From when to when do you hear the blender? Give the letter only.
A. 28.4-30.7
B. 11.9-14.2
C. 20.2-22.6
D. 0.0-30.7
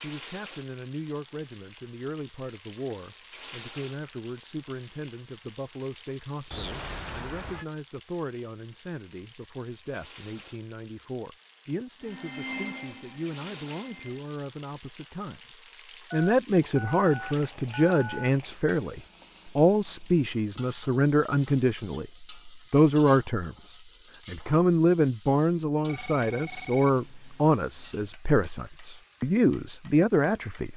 B.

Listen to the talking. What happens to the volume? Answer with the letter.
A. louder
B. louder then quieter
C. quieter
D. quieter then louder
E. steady
A.